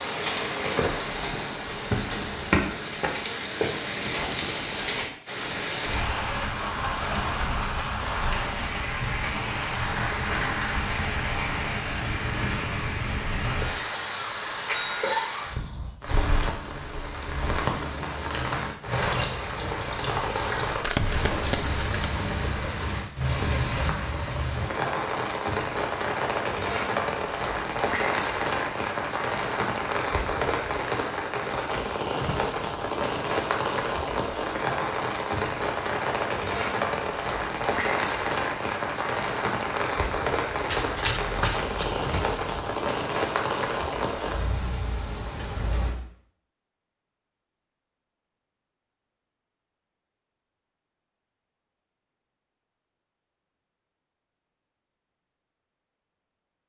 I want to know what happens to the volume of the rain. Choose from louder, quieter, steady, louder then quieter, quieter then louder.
steady.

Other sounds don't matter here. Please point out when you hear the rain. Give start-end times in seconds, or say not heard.
0.0-46.0.